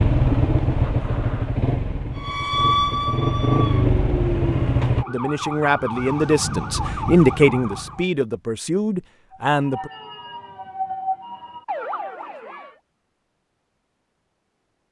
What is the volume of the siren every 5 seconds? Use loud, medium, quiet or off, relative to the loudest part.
loud, medium, medium.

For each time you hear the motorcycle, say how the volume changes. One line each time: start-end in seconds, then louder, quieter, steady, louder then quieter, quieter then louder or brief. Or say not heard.
0.0-5.0 quieter then louder.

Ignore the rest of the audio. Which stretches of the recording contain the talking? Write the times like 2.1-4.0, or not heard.
5.0-9.9.